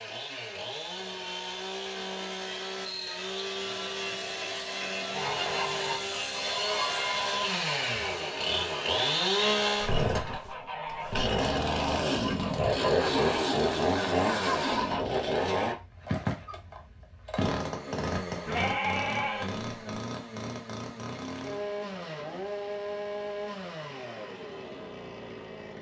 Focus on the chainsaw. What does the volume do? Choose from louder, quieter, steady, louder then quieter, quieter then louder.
louder then quieter.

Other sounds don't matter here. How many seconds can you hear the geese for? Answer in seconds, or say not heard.
11 s.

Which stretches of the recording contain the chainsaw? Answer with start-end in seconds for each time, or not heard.
0.0-25.7.